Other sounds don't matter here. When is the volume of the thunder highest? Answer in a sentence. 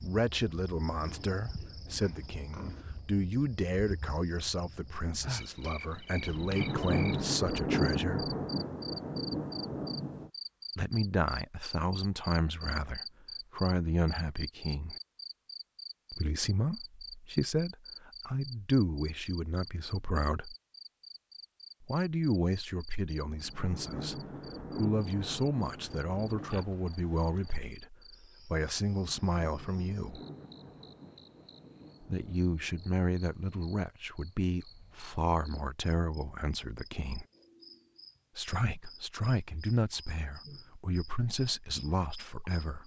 The volume of the thunder peaks at 8 seconds.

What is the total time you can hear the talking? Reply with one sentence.
You can hear the talking for 35 seconds altogether.